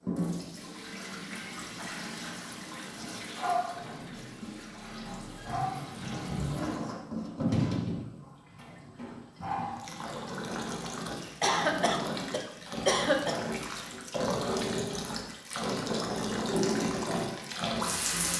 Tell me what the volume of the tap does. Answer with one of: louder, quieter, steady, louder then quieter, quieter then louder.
louder.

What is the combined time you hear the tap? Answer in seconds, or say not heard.
18 s.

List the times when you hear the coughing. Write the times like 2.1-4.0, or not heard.
11.4-13.3.